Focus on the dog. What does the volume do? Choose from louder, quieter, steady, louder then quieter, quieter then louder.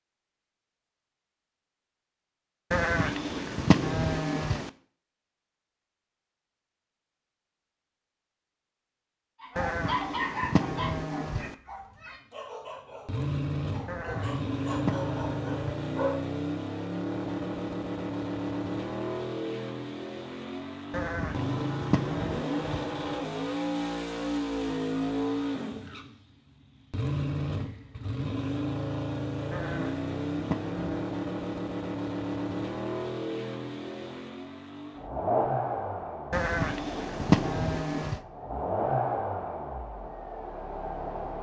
quieter then louder.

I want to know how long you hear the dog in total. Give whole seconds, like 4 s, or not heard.
7 s.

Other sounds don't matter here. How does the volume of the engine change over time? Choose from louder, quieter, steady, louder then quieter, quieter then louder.
steady.